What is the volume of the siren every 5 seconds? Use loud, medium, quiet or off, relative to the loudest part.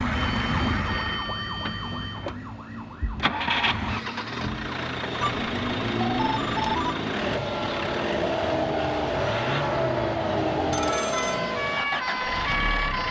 medium, loud, loud.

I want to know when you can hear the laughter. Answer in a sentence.
The laughter can't be heard in this clip.